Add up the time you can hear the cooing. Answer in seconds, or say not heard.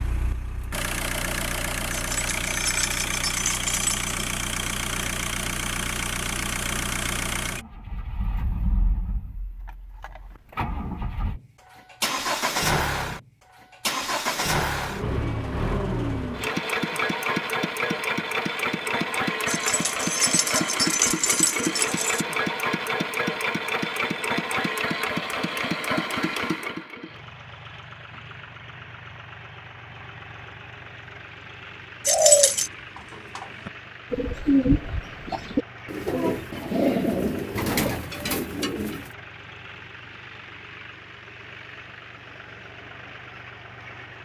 7 s.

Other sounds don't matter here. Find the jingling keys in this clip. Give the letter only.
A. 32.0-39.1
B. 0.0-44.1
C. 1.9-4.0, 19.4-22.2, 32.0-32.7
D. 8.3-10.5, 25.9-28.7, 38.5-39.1
C.